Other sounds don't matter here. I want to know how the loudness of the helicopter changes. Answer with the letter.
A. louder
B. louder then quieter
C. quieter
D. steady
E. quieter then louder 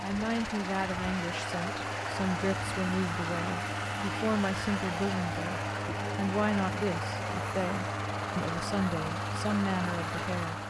D.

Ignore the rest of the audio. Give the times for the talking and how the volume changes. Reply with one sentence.
You can hear the talking from 0.0 to 10.6 s, at a steady volume.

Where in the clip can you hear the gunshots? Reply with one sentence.
The gunshots can't be heard in this clip.